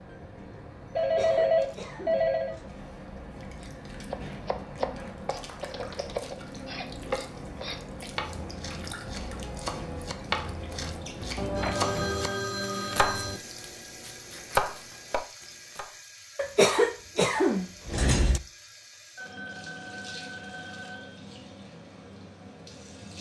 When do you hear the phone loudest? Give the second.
1 s.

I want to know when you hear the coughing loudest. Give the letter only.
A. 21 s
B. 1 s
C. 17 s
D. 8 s
C.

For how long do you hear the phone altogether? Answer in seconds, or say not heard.
6 s.